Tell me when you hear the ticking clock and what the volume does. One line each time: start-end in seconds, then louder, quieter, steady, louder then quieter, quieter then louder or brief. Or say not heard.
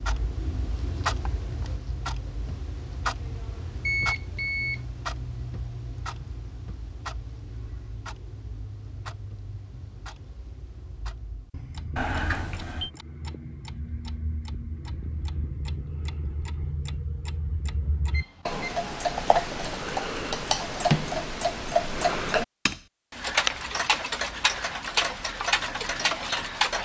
0.0-26.7 quieter then louder.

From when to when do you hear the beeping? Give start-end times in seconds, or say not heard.
3.9-4.8, 11.9-12.9, 18.1-18.6.